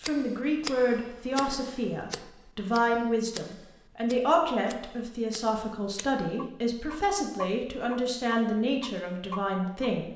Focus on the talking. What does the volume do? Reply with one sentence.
The loudness of the talking stays about the same.